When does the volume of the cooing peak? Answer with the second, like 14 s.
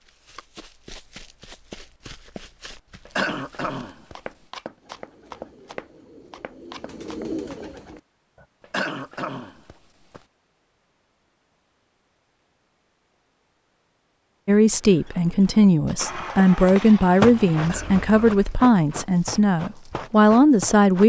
7 s.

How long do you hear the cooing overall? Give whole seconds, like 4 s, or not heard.
4 s.